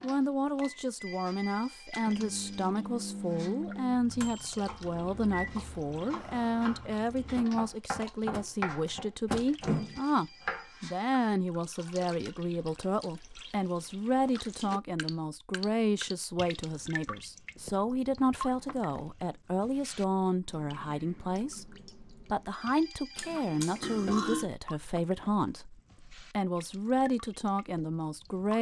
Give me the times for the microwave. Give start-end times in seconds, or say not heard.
0.6-10.0.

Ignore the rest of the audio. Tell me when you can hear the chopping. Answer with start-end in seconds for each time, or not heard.
4.5-11.2.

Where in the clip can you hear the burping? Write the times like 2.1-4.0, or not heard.
23.1-24.5.